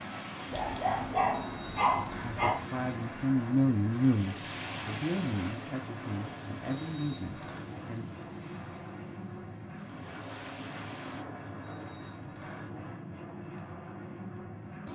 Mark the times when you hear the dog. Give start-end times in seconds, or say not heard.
0.5-2.6.